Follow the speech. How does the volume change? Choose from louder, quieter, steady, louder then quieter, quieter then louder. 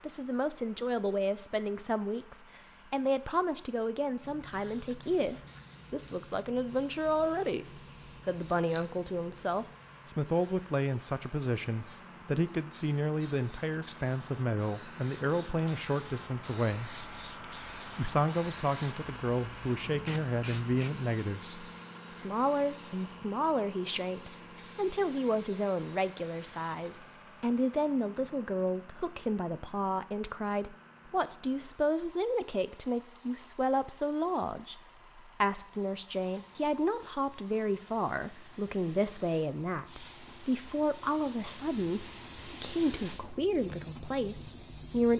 steady.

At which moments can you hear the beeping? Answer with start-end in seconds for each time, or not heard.
not heard.